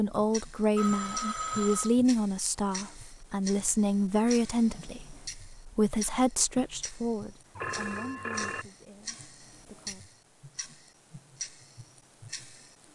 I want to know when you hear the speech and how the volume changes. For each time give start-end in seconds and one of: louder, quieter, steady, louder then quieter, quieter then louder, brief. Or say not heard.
0.0-10.1 quieter.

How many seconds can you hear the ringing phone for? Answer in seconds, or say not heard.
2 s.